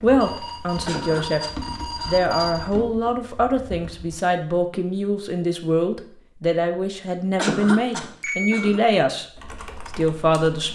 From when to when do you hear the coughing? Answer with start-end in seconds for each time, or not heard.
0.8-2.5, 7.3-8.8.